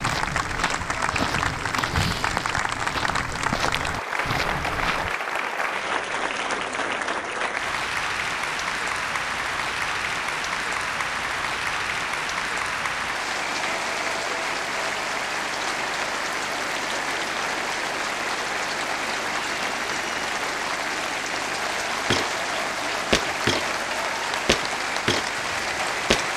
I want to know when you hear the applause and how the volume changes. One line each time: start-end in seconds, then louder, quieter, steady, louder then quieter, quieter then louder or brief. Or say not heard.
0.0-26.3 steady.